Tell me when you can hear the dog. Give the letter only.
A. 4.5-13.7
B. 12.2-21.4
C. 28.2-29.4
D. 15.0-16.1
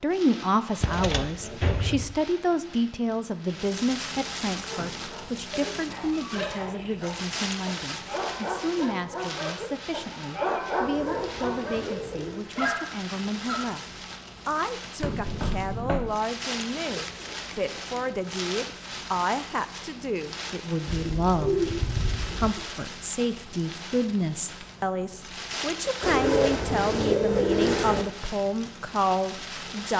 A.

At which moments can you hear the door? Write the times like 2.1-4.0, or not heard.
15.0-16.1.